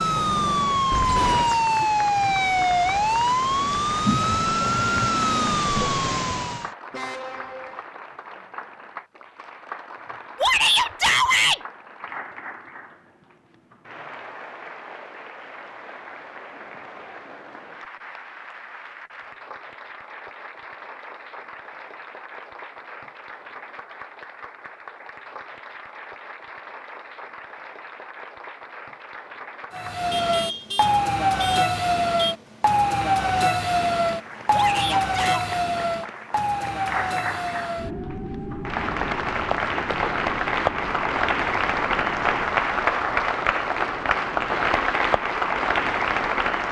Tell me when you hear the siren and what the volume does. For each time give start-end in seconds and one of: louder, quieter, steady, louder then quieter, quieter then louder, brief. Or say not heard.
0.0-6.7 steady
29.7-42.7 quieter.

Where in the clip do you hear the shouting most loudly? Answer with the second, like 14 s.
11 s.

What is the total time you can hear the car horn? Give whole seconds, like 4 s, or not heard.
3 s.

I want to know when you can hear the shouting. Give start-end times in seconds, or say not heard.
10.4-11.6, 34.5-35.5.